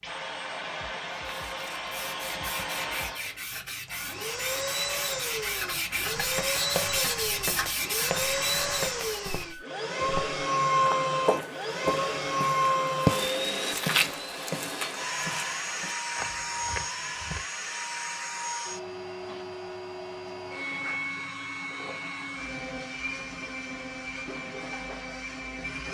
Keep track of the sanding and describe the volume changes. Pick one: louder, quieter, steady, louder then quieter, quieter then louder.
louder.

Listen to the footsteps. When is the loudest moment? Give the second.
13 s.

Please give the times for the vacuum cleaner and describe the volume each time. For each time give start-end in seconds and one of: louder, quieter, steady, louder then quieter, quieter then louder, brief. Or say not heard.
0.0-25.8 louder then quieter.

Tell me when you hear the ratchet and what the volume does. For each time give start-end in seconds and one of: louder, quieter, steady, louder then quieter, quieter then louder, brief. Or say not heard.
not heard.